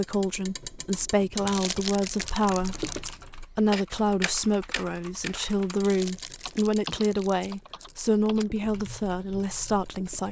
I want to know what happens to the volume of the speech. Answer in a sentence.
The loudness of the speech stays about the same.